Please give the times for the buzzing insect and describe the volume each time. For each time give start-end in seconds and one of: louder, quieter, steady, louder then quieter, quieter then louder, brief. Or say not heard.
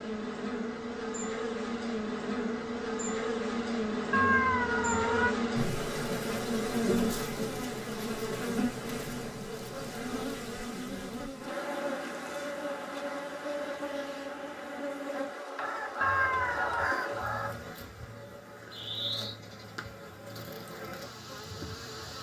0.0-22.1 quieter.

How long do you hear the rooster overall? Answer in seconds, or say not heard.
2 s.